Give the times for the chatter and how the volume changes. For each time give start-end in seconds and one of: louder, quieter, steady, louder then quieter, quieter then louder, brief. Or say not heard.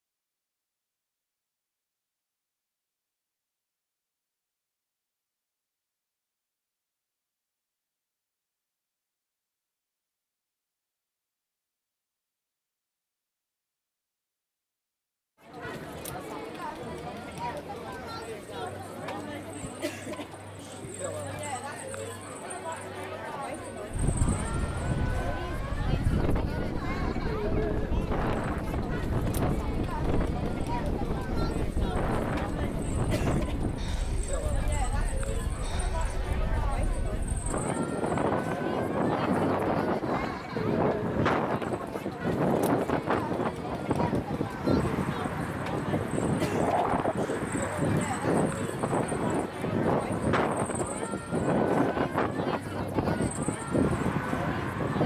15.4-55.0 steady.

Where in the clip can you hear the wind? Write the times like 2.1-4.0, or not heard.
23.9-55.0.